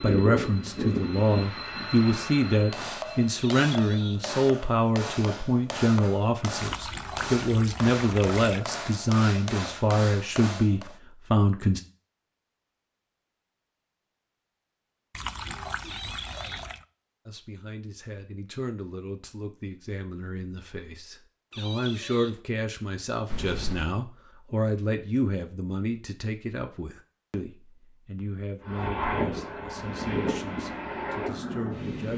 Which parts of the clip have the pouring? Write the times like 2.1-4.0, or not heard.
6.6-8.6, 15.2-16.8, 23.3-23.9.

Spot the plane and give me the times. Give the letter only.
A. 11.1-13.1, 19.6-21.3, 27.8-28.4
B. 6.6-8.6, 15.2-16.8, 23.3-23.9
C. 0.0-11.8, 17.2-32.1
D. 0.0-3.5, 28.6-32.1
D.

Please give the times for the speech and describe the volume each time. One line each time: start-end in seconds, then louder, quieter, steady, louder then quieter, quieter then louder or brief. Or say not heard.
0.0-11.8 steady
17.2-32.1 louder then quieter.